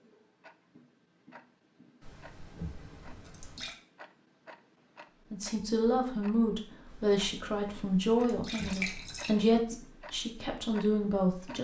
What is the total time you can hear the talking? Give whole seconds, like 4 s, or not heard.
6 s.